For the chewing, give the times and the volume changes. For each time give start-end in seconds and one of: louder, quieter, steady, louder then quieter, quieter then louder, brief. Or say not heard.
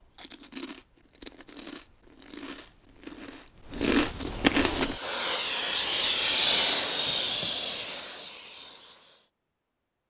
0.0-5.0 louder.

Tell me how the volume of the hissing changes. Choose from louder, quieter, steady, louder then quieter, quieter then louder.
louder then quieter.